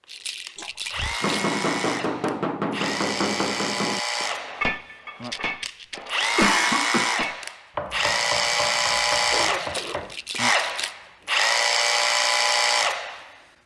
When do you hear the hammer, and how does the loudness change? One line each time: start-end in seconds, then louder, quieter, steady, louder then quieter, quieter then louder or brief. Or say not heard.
1.2-10.2 quieter.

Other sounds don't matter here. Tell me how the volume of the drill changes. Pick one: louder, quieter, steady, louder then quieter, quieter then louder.
louder.